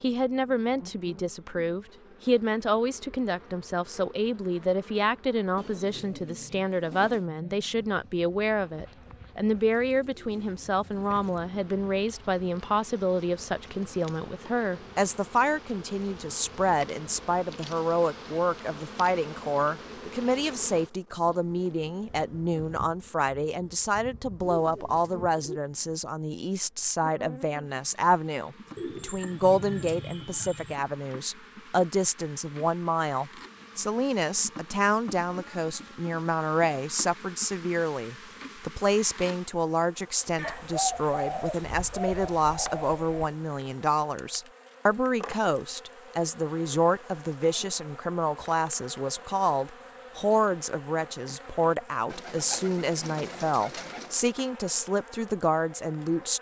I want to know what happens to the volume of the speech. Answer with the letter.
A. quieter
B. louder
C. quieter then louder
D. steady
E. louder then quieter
D.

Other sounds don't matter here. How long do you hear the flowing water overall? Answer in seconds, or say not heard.
not heard.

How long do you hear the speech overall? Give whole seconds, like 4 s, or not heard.
56 s.